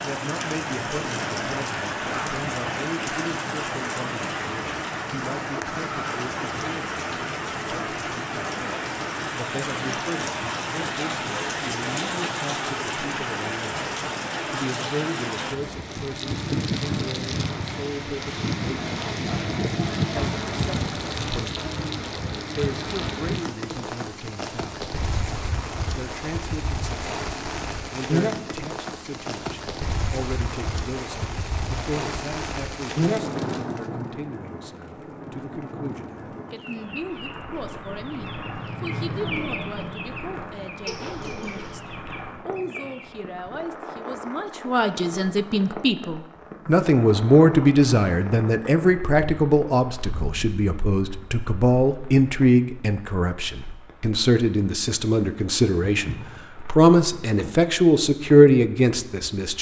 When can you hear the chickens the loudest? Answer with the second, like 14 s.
39 s.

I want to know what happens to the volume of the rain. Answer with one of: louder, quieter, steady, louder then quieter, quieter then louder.
quieter.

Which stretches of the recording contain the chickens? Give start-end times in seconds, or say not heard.
36.5-43.1.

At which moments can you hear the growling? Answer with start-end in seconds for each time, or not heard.
40.9-41.8.